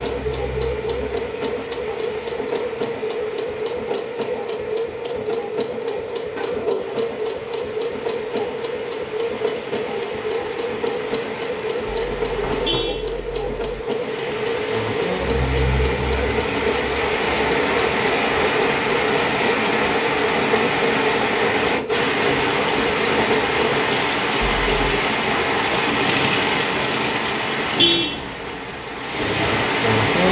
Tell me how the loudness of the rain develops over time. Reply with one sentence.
The volume of the rain goes up.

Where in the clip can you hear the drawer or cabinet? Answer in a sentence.
The drawer or cabinet can be heard from 6.3 to 7.0 s, from 11.9 to 13.8 s and from 24.4 to 25.1 s.